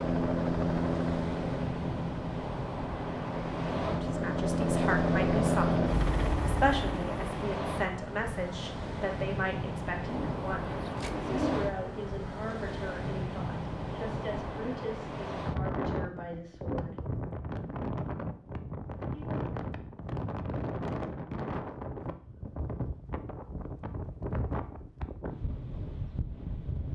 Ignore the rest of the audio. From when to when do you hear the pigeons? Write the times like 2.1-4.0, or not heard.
10.1-11.8.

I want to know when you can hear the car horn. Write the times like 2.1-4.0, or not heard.
not heard.